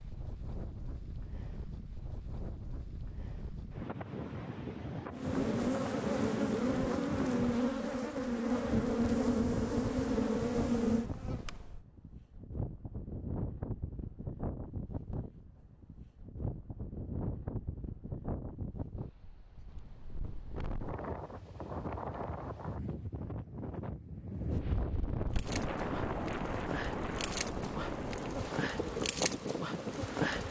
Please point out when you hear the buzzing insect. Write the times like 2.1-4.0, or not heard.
5.2-11.8, 25.3-30.4.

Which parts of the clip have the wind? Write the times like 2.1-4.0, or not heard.
0.0-30.4.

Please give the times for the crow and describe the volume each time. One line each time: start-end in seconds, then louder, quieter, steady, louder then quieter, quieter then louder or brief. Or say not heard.
not heard.